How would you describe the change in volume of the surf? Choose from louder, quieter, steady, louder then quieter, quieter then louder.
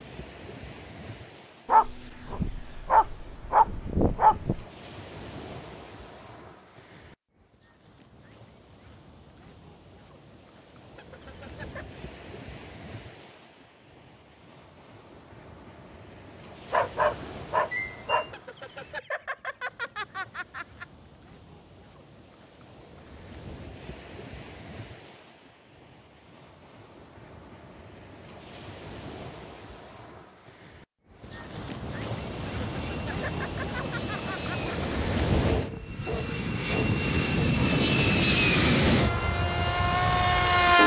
louder.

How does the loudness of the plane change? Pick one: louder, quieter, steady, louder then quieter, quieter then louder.
louder.